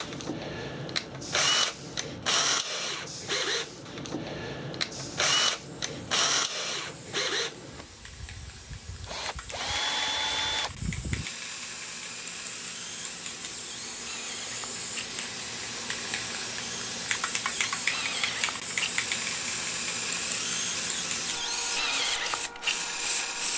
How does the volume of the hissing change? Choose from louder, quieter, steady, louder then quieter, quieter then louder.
louder.